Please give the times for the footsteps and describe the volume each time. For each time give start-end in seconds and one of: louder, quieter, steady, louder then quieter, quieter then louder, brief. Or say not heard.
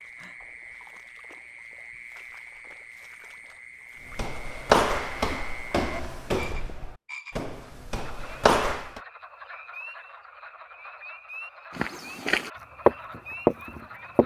4.1-9.0 quieter then louder
11.8-14.2 brief.